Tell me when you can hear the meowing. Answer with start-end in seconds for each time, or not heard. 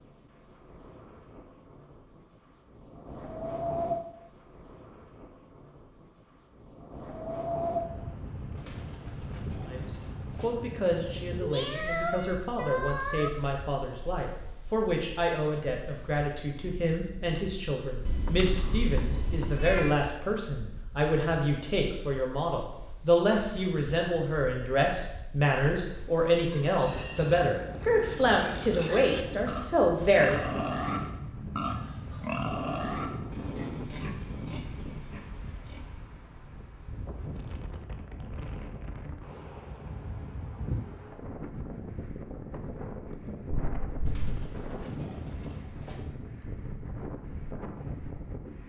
11.4-13.3, 18.1-19.9, 43.5-44.3.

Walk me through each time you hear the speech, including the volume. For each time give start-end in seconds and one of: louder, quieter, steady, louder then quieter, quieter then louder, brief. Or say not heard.
9.7-30.6 louder.